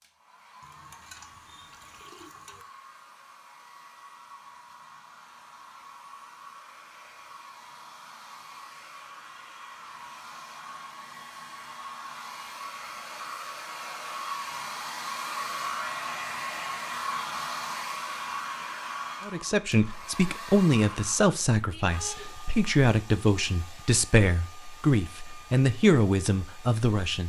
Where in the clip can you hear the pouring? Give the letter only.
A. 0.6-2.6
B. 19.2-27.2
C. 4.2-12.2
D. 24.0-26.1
A.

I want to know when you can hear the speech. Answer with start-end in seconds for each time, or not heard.
19.2-27.2.